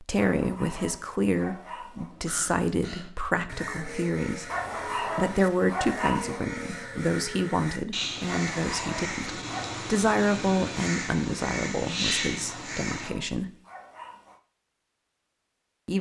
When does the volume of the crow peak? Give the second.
12 s.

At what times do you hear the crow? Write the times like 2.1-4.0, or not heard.
2.1-13.1.